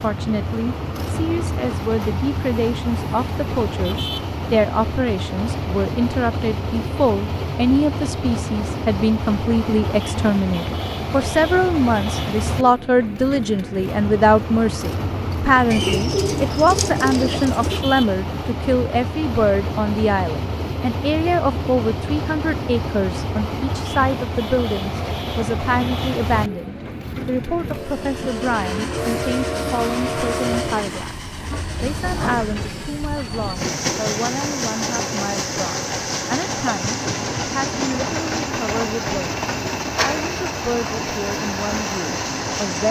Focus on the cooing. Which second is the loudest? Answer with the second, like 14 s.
16 s.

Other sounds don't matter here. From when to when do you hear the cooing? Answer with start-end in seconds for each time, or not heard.
15.7-17.8.